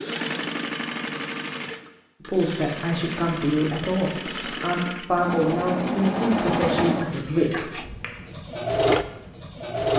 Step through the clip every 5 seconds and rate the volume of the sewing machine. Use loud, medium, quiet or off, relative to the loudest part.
medium, loud.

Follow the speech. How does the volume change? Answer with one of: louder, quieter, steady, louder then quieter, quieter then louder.
steady.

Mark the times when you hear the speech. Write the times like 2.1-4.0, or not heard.
2.2-7.8.